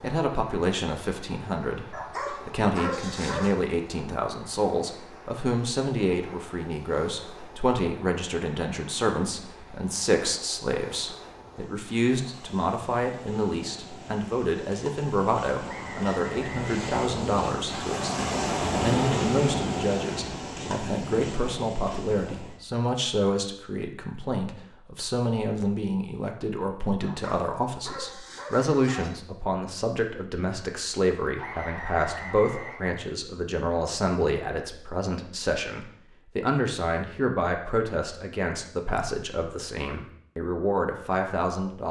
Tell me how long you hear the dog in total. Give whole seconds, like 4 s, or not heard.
4 s.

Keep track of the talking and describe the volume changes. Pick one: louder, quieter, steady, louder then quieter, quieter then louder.
steady.